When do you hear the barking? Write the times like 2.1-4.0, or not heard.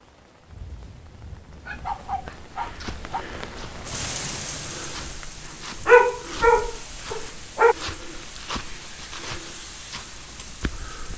1.6-3.2, 5.8-7.8.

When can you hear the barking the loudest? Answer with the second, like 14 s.
6 s.